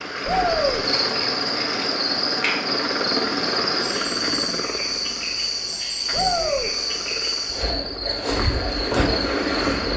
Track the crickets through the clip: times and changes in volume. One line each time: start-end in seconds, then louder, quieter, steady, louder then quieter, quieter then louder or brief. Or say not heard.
0.0-9.9 steady.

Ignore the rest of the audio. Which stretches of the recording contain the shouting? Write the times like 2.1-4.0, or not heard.
0.2-0.8, 6.1-6.7.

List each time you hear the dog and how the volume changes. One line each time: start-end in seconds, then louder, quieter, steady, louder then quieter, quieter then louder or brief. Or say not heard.
not heard.